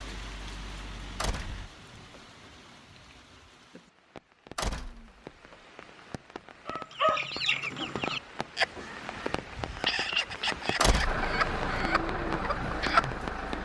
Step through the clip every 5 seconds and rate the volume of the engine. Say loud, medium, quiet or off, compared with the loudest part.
quiet, off, loud.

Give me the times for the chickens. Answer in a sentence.
You can hear the chickens from 6.7 to 13.6 s.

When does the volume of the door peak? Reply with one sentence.
The loudest moment of the door is at 11 seconds.